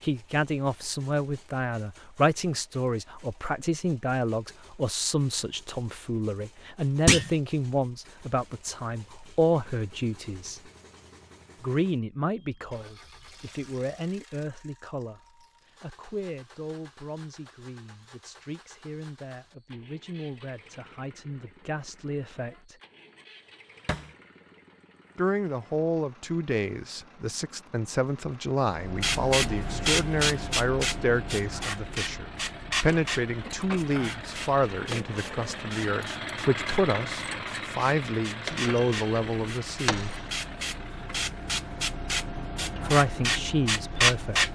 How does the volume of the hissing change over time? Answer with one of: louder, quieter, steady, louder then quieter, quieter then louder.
quieter then louder.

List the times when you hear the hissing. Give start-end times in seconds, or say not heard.
28.7-44.5.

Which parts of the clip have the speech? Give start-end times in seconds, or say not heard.
0.0-10.6, 11.6-15.2, 15.8-22.8, 25.1-40.1, 42.8-44.5.